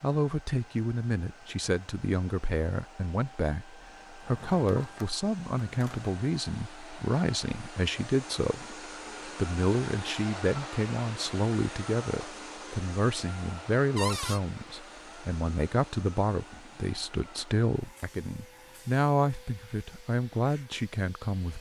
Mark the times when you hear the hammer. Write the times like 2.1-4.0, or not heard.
not heard.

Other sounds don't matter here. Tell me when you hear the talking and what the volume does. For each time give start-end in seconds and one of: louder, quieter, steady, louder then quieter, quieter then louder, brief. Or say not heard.
0.0-21.5 steady.